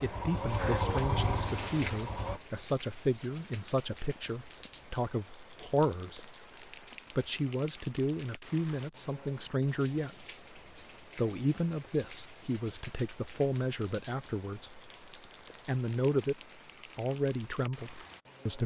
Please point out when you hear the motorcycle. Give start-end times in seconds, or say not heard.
0.0-2.4.